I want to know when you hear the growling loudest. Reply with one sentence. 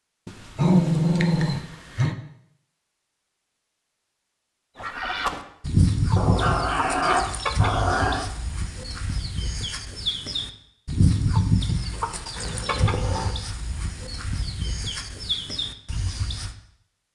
The loudest moment of the growling is at 1 second.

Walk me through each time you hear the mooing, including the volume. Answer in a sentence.
You can't hear the mooing here.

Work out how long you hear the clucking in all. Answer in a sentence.
The clucking can be heard for 12 seconds in total.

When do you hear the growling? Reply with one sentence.
You can hear the growling from 0.2 to 2.1 s, from 6.2 to 8.2 s and from 12.3 to 13.4 s.